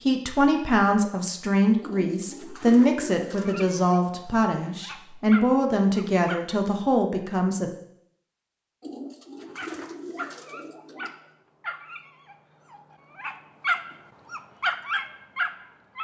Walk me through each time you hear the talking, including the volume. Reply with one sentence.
You can hear the talking from 0.0 to 7.7 s, at a steady volume.